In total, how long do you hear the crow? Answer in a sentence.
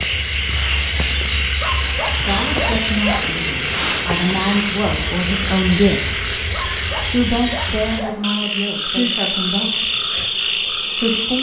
The crow can't be heard in this clip.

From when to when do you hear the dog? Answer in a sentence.
You can hear the dog from 1.6 to 3.3 s and from 6.5 to 8.2 s.